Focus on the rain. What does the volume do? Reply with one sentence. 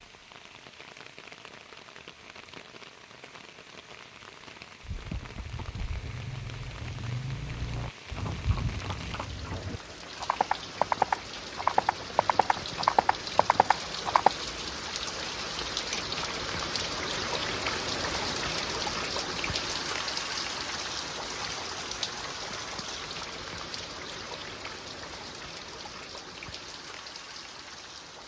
The volume of the rain goes up, then down.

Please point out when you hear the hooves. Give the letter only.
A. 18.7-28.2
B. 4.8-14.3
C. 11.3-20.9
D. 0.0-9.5
B.